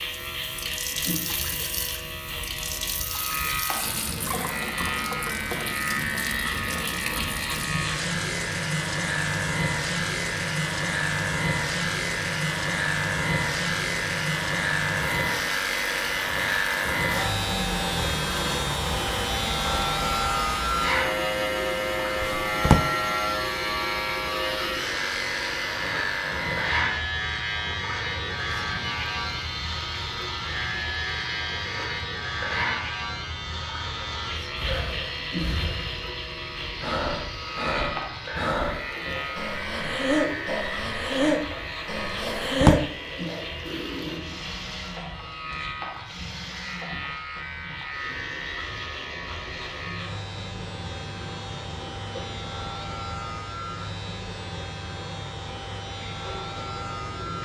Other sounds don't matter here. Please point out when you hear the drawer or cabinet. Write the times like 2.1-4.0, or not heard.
22.2-22.9, 42.1-42.9.